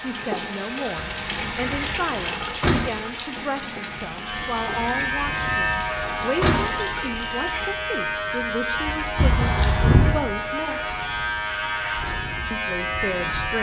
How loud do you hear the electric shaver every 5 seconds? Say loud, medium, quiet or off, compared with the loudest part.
medium, loud, loud.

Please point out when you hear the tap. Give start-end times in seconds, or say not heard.
0.0-7.7.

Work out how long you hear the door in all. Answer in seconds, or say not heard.
5 s.